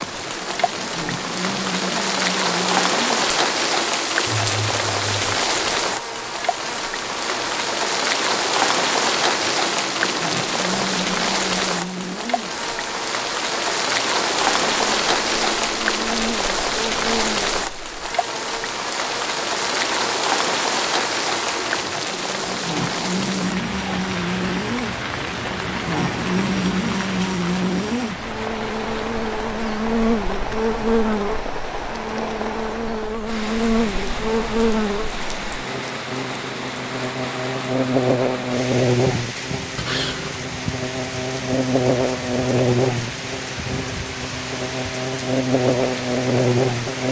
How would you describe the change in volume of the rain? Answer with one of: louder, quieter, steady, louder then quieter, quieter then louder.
quieter.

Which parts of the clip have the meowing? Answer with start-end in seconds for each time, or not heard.
4.2-5.3, 39.8-40.4.